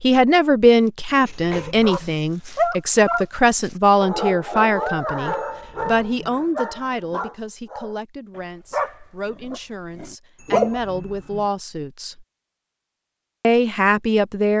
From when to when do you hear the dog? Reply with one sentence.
The dog can be heard from 1.2 to 3.2 s and from 4.0 to 10.8 s.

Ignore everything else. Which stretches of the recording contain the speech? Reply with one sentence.
You can hear the speech from 0.0 to 12.2 s and from 13.4 to 14.5 s.